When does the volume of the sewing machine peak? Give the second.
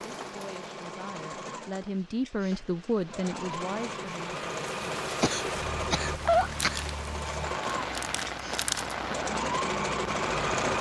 10 s.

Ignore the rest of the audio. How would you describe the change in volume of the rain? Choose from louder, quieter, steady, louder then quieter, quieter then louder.
louder.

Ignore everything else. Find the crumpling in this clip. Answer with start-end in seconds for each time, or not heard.
6.5-8.9.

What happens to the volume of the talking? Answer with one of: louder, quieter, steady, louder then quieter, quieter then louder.
louder then quieter.